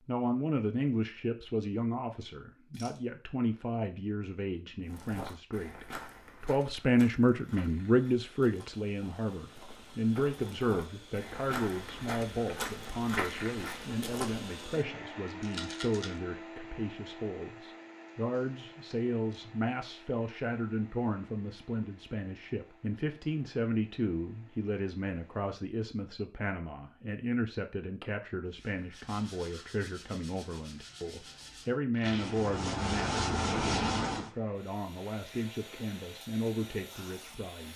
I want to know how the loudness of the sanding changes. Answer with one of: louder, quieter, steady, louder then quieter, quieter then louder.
louder.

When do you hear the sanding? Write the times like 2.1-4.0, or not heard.
28.5-34.3.